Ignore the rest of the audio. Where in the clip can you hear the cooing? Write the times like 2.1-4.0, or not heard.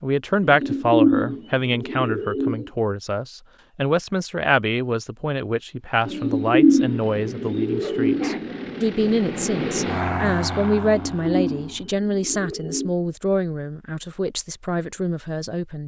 0.4-2.7, 6.0-8.8, 10.8-12.9.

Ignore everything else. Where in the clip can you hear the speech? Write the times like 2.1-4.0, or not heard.
0.0-15.8.